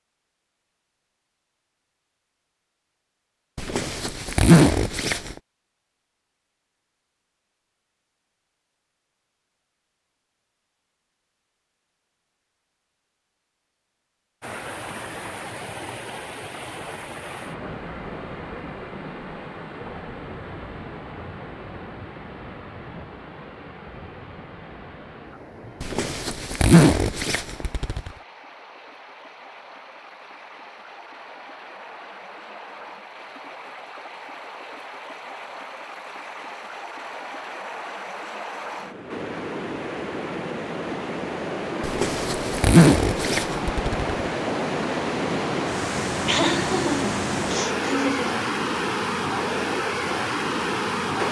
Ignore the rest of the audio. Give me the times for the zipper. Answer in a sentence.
The zipper can be heard from 3.5 to 5.3 s, from 25.8 to 28.1 s and from 41.8 to 44.1 s.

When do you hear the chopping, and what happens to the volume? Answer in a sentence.
You can't hear the chopping here.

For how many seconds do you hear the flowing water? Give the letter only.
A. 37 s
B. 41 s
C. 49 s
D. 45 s
A.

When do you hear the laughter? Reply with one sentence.
You can hear the laughter from 46.2 to 48.5 s.